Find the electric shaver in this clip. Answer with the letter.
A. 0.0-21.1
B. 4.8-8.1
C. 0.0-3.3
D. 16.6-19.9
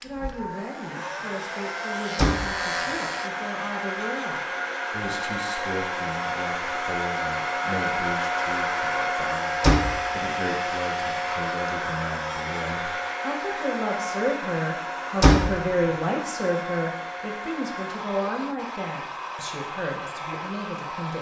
C.